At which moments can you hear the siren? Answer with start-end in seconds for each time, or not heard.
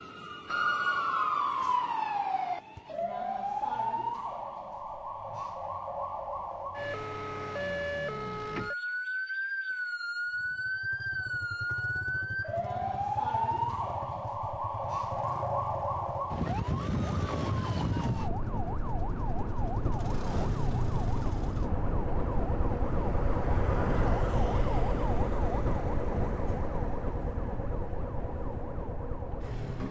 0.0-29.8.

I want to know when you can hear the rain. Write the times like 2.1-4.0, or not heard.
not heard.